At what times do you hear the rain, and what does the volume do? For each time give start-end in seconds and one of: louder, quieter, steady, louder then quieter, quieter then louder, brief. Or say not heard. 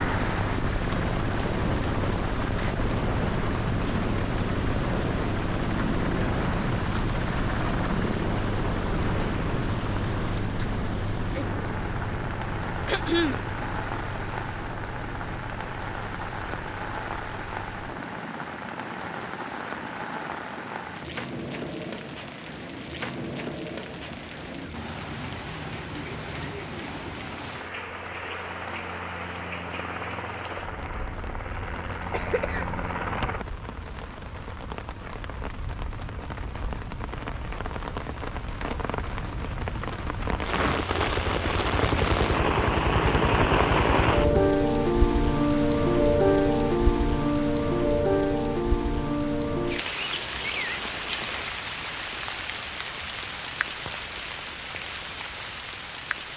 0.0-56.3 louder.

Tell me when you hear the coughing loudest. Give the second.
13 s.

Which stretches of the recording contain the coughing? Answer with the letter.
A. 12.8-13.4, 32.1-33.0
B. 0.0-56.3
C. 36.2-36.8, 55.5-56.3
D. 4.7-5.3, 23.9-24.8
A.